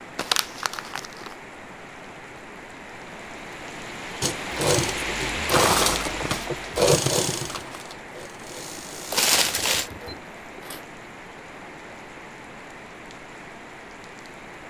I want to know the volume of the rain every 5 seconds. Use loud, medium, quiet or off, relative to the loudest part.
loud, loud, medium.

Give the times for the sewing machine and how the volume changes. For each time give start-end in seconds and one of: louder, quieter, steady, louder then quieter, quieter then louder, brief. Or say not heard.
4.2-10.9 quieter.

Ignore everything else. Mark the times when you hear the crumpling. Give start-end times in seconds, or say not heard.
0.1-1.4, 9.1-9.9.